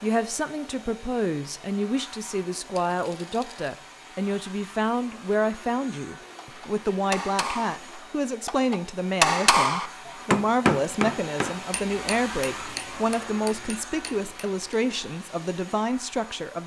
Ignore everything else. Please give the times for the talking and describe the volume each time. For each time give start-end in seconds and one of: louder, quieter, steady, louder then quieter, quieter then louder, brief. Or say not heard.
0.0-16.6 steady.